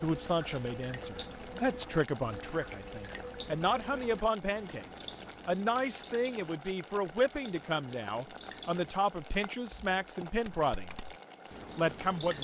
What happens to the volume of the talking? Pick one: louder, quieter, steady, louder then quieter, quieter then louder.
steady.